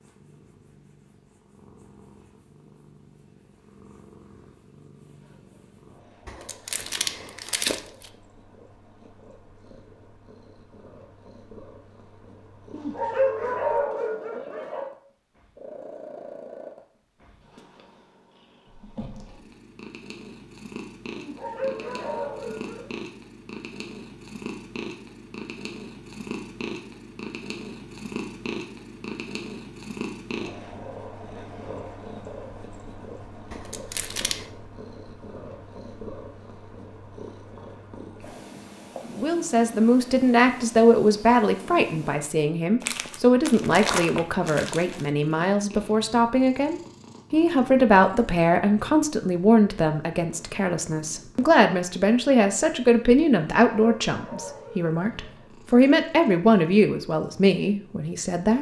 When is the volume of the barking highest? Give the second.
13 s.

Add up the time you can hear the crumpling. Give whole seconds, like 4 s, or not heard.
5 s.